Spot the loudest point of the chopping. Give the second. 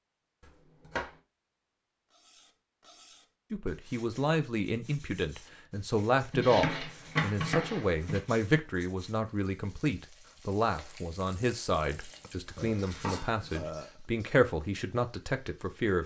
7 s.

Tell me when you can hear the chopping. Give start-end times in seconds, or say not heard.
0.4-1.1, 6.3-8.2, 12.0-13.6.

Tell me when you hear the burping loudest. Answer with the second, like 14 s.
14 s.